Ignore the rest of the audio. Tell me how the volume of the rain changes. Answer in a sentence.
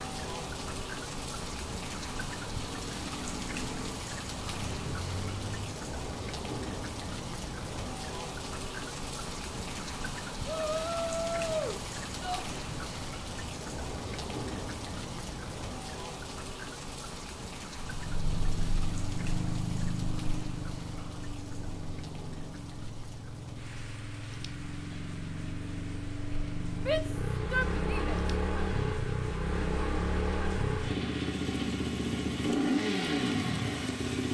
The volume of the rain goes down.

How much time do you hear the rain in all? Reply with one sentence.
The rain can be heard for 34 seconds in total.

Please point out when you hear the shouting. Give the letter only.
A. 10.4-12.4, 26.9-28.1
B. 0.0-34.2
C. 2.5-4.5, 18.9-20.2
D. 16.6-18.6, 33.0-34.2
A.